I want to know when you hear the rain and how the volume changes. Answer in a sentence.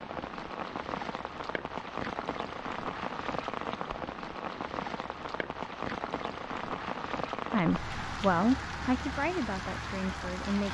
You can hear the rain from 0.0 to 10.6 s, at a steady volume.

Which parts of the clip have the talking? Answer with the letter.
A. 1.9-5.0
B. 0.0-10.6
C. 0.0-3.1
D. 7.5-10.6
D.